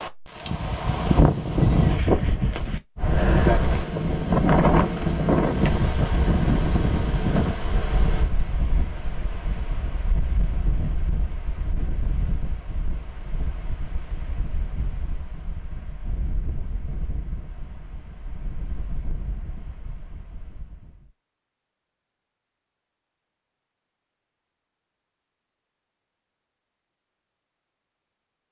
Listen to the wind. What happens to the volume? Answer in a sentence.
The volume of the wind goes down.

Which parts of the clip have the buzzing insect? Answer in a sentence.
The buzzing insect can be heard from 3.3 to 8.3 s.